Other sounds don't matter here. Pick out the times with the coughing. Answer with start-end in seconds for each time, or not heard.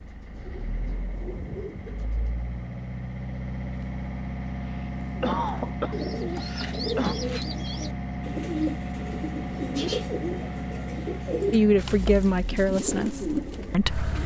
4.6-7.2.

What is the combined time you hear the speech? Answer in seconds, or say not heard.
3 s.